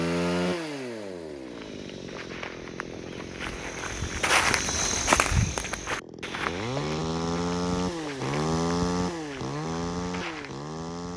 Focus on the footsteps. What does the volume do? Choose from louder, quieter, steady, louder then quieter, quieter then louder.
louder then quieter.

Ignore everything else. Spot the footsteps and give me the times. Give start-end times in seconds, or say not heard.
1.4-10.7.